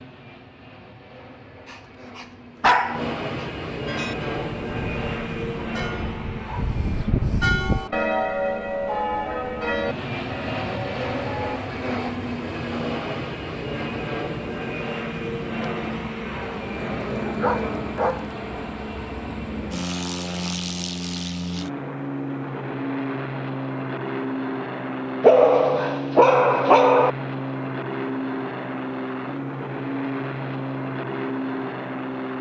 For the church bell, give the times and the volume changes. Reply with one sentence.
The church bell can be heard from 3.9 to 11.6 s, getting louder then quieter.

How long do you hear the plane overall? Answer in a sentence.
The plane can be heard for 32 seconds in total.